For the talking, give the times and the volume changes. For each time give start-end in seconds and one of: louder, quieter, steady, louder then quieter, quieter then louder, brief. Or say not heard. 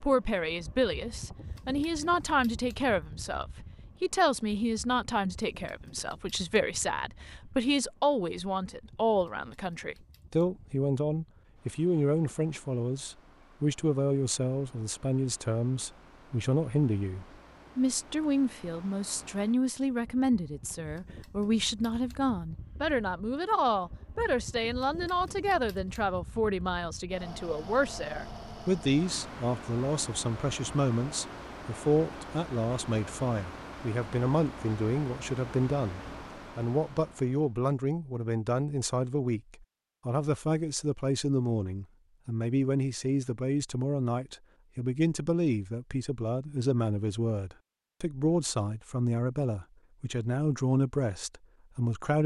0.0-52.2 steady.